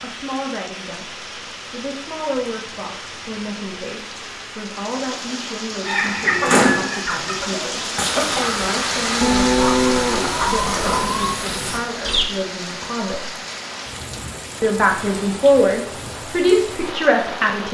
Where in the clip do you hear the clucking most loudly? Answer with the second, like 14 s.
7 s.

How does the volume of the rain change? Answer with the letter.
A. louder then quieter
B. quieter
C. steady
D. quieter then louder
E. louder
A.